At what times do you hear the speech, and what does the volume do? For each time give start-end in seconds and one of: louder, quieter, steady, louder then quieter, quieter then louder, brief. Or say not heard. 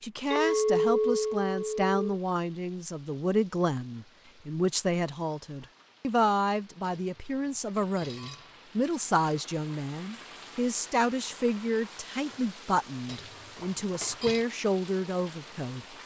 0.0-15.8 steady.